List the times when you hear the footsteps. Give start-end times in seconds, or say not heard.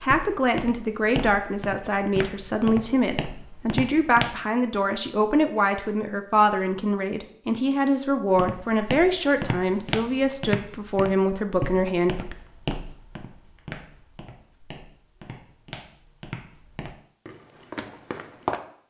0.0-4.3, 8.3-18.6.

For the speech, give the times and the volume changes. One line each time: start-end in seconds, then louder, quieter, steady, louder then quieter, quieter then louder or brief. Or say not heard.
0.0-12.3 steady.